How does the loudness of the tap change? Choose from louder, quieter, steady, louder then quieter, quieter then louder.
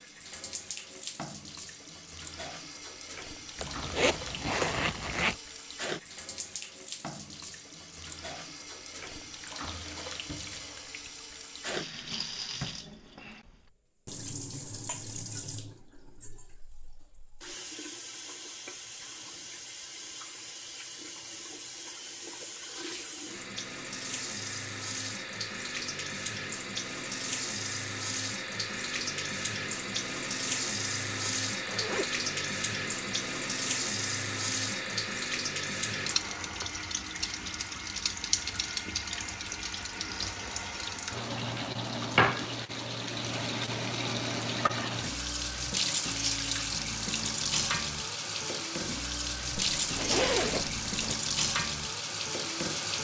louder.